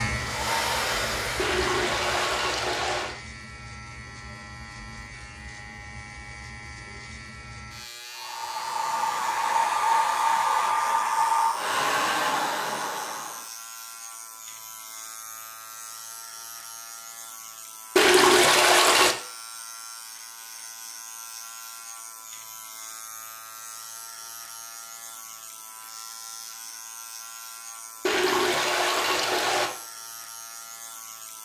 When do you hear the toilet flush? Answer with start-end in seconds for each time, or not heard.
1.4-3.1, 17.9-19.1, 28.1-29.7.